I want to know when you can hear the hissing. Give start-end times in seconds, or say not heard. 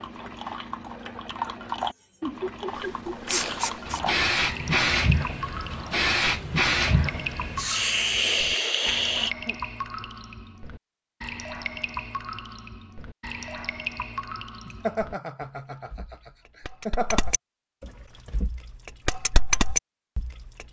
2.8-9.3.